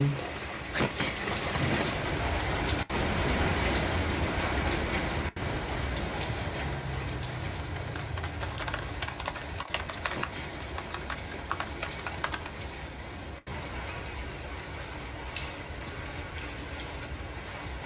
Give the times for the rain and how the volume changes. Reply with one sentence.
You can hear the rain from 0.0 to 17.8 s, getting quieter.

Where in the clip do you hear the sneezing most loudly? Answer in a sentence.
The loudest moment of the sneezing is at 1 second.